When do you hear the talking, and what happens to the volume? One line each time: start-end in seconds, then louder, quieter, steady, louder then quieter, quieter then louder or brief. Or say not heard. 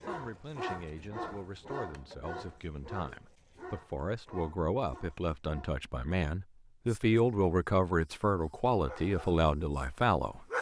0.0-10.4 louder.